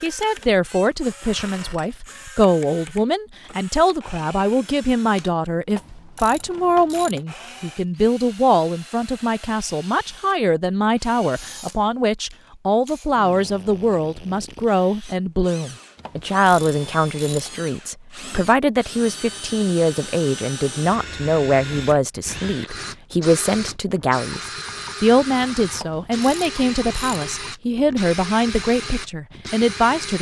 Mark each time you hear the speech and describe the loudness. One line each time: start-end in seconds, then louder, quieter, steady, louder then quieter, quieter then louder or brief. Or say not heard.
0.0-30.1 steady.